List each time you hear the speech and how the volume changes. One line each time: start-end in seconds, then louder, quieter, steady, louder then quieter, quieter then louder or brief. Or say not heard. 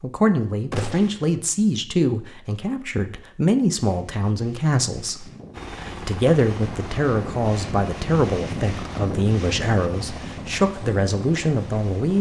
0.0-12.1 steady.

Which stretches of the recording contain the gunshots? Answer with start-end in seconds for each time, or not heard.
0.7-1.2.